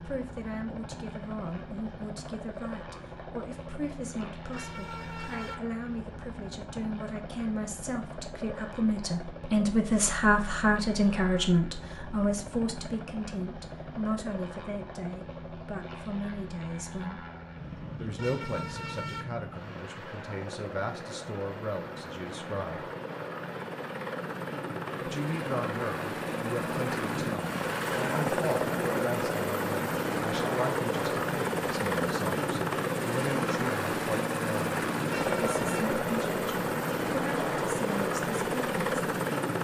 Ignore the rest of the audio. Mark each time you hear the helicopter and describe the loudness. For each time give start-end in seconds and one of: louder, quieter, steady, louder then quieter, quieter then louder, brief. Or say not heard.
0.0-39.6 louder.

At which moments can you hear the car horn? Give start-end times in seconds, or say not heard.
4.5-5.6, 18.1-19.2, 35.0-35.9.